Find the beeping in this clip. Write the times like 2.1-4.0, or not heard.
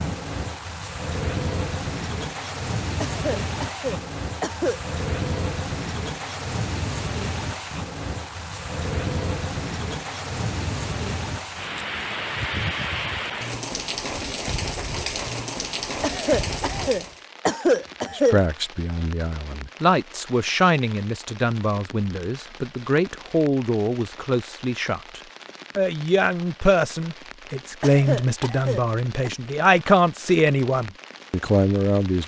not heard.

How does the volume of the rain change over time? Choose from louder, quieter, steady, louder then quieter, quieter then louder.
quieter.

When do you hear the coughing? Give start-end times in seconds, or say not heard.
3.0-4.8, 16.0-18.4, 27.8-29.3.